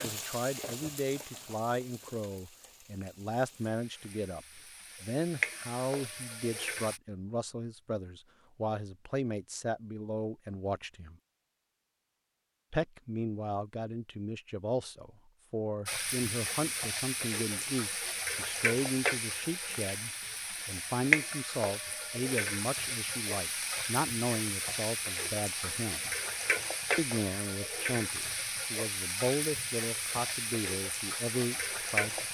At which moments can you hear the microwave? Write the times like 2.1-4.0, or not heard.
not heard.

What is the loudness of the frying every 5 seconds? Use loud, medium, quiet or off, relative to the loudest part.
quiet, loud, off, loud, loud, loud, loud.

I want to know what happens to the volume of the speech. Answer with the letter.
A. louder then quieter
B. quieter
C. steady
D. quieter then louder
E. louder
C.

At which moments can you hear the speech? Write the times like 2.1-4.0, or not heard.
0.0-11.2, 12.7-26.1, 26.9-32.2.